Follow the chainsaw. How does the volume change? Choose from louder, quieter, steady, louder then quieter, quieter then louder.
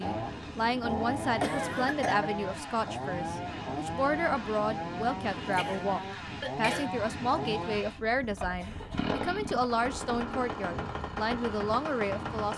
steady.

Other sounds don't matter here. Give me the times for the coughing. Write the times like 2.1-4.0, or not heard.
1.4-2.3, 5.5-6.8, 8.6-9.2.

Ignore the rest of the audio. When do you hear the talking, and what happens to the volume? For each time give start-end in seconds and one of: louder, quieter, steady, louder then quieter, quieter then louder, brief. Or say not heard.
0.0-12.5 steady.